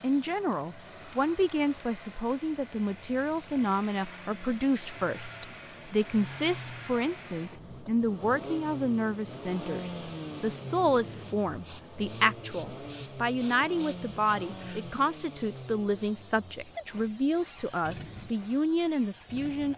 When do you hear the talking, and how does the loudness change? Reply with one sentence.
The talking can be heard from 0.0 to 19.7 s, at a steady volume.